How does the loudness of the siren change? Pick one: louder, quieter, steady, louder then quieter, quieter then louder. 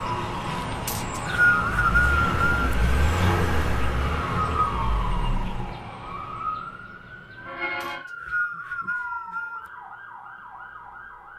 quieter.